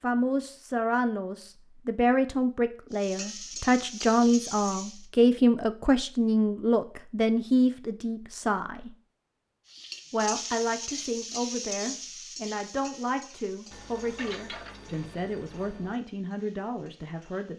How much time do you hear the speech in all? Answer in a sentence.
The speech can be heard for 16 seconds in total.